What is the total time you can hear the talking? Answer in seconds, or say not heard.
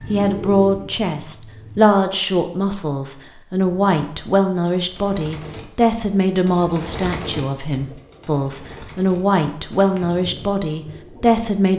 12 s.